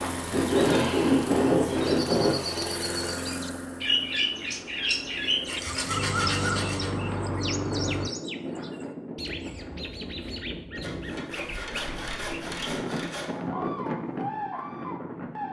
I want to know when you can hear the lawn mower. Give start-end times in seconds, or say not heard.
0.0-8.1.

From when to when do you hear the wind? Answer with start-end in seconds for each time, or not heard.
6.0-15.4.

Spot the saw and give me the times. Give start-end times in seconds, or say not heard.
0.3-2.4, 5.5-6.9, 10.8-13.3.